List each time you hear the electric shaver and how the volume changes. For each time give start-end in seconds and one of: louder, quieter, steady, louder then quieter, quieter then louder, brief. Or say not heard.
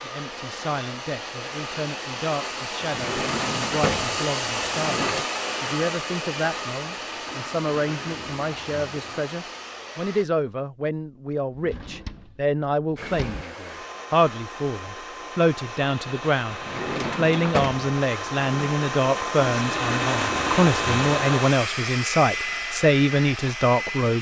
not heard.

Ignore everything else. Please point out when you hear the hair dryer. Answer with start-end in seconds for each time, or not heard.
0.0-10.2, 12.9-24.1.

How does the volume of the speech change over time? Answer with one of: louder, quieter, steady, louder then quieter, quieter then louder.
louder.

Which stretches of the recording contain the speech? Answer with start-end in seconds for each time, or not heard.
0.0-24.1.